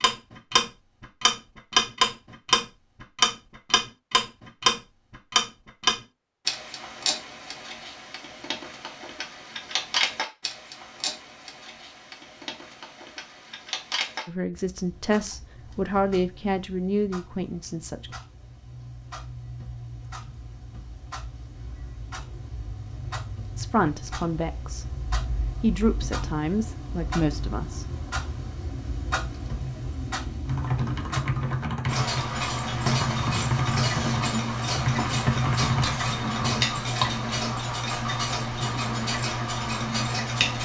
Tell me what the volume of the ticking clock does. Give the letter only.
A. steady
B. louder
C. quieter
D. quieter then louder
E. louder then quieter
D.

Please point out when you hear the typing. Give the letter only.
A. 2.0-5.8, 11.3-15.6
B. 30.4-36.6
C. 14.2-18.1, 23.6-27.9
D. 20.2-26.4
B.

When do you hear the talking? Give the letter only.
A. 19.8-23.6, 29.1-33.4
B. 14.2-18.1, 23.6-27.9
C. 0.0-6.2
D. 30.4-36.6
B.